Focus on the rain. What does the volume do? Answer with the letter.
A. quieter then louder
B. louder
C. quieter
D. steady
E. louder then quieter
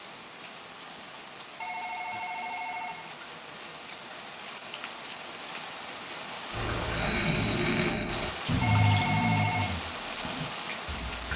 B.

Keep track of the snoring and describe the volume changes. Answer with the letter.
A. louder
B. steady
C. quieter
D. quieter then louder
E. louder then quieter
C.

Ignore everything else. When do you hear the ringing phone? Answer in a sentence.
The ringing phone can be heard from 1.6 to 3.1 s and from 8.6 to 9.8 s.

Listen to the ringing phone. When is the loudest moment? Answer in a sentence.
The volume of the ringing phone peaks at 9 seconds.